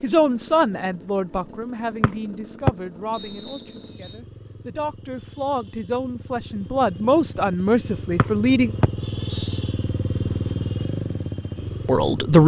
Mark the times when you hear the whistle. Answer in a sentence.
The whistle can be heard from 2.0 to 4.2 s and from 8.2 to 9.6 s.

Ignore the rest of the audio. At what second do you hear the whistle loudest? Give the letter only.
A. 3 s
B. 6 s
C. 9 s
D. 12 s
A.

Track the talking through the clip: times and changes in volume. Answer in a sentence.
You can hear the talking from 0.0 to 8.8 s, getting quieter then louder; and briefly from 11.8 to 12.4 s.